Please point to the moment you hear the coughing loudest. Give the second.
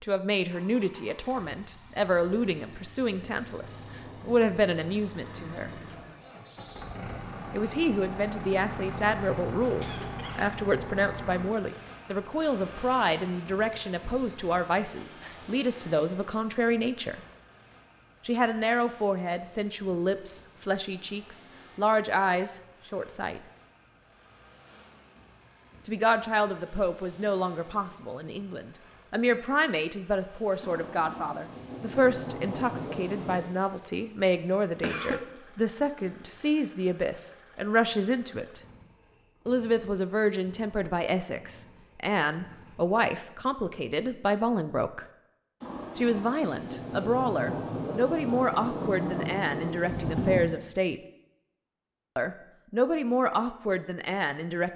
35 s.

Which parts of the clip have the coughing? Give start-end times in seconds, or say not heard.
9.8-10.4, 34.8-35.2.